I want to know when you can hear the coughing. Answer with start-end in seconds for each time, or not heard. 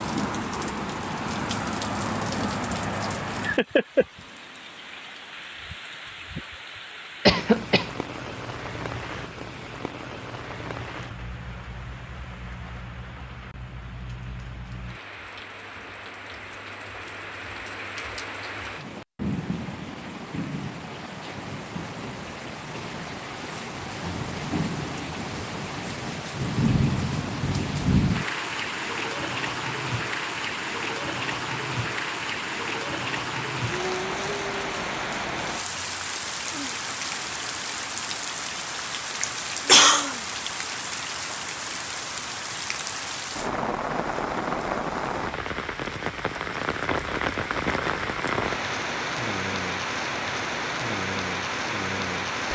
7.2-7.9, 39.2-40.1.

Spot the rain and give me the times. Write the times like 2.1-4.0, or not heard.
0.0-52.5.